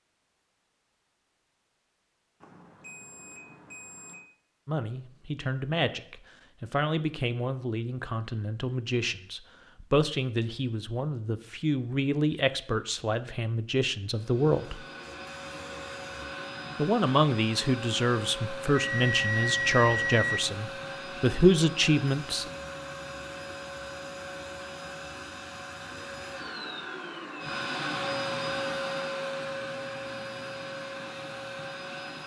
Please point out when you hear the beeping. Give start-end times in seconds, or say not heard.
2.4-4.2, 18.7-20.4.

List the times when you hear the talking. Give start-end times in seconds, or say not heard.
4.7-14.8, 16.8-22.4.